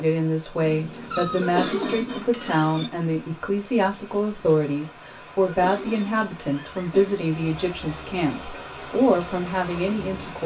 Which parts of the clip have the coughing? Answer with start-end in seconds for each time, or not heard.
1.4-2.6, 5.4-7.2.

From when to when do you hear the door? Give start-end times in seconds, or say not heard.
not heard.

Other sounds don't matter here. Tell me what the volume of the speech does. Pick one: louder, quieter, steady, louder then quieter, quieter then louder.
steady.